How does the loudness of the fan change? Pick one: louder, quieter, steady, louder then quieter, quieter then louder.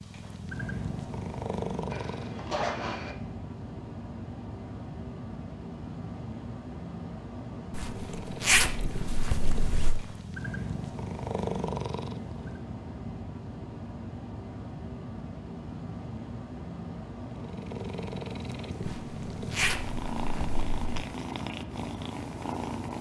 steady.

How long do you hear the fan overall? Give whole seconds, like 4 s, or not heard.
23 s.